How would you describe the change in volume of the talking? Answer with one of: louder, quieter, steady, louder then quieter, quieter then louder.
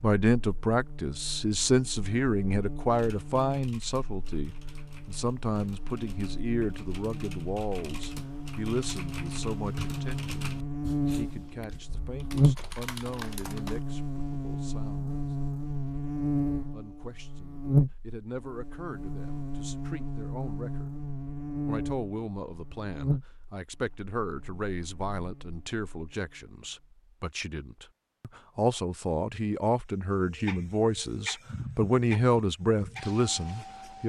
quieter then louder.